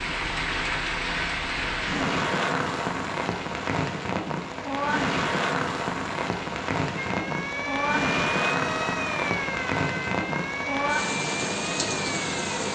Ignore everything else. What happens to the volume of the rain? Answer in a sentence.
The volume of the rain stays about the same.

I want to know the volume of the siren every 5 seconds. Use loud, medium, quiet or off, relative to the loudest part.
off, loud, loud.